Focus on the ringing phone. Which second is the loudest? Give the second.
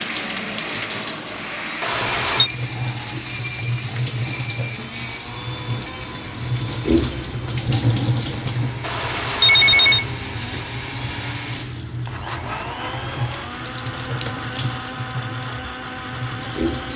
10 s.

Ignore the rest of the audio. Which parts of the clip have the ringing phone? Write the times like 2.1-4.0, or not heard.
1.8-2.5, 8.8-10.1.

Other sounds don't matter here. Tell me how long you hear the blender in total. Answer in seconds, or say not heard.
17 s.